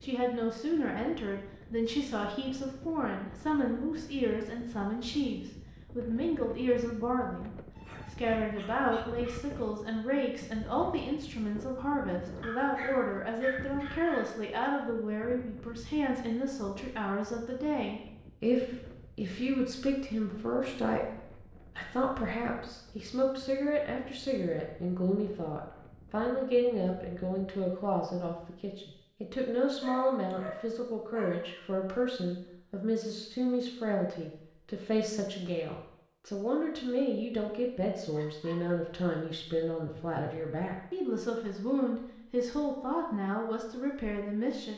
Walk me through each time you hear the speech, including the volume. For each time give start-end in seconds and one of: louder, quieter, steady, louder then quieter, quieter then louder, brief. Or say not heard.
0.0-44.7 steady.